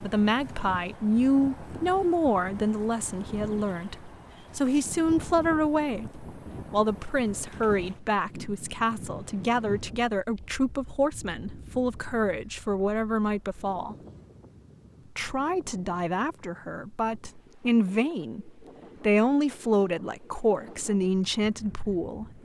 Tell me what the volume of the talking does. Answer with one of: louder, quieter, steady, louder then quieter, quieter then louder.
steady.